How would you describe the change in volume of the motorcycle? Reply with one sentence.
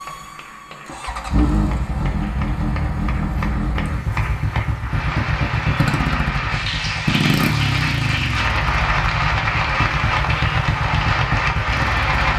The loudness of the motorcycle stays about the same.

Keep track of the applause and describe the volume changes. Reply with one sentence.
The loudness of the applause goes up.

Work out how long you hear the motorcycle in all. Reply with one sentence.
The motorcycle can be heard for 12 seconds in total.